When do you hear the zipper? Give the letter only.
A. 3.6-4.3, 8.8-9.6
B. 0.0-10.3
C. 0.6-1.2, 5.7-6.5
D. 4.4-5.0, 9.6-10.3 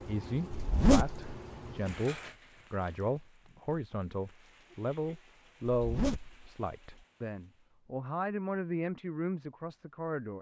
C.